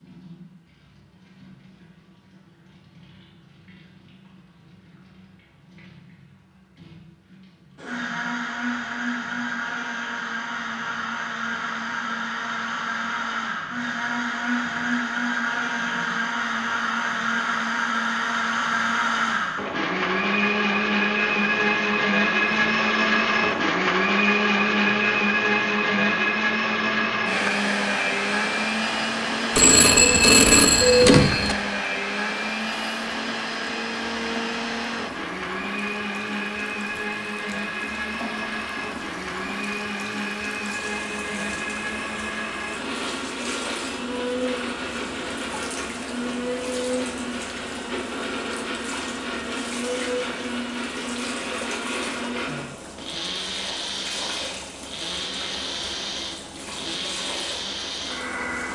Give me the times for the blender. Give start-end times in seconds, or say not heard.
7.8-58.6.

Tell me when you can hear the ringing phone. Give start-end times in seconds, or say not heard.
29.5-31.6.